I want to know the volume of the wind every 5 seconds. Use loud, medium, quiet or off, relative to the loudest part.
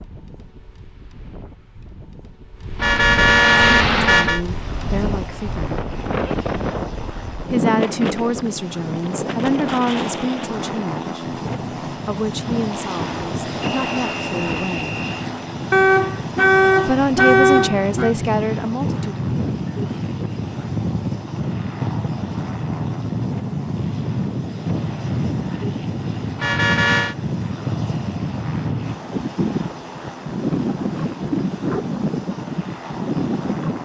medium, loud, medium, loud, loud, loud, loud.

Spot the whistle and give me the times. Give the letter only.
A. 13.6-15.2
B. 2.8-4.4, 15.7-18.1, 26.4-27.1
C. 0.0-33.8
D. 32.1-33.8
A.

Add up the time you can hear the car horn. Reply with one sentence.
You can hear the car horn for 5 seconds altogether.